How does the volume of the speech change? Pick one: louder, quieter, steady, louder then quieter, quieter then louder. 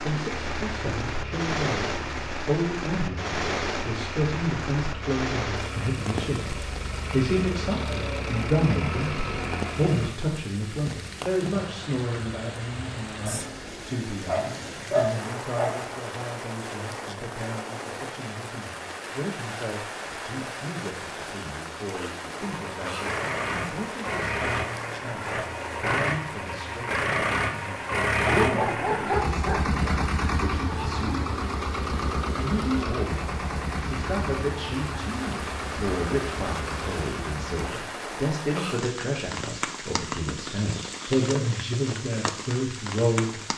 quieter then louder.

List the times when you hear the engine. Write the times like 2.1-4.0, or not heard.
0.2-10.2, 22.4-37.8.